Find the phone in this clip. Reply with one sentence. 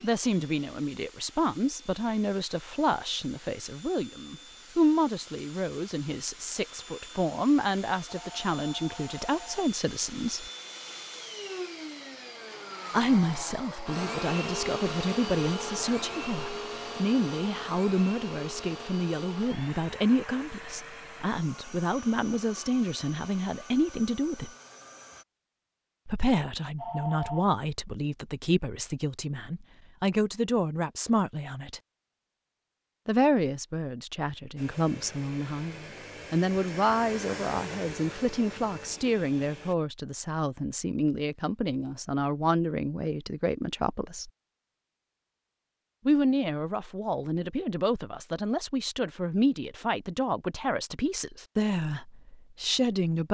The phone can be heard from 8.1 to 9.4 s and from 26.8 to 27.4 s.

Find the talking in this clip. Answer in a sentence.
The talking can be heard from 0.0 to 10.4 s, from 12.9 to 24.5 s, from 26.1 to 31.8 s, from 33.0 to 44.3 s and from 46.0 to 53.2 s.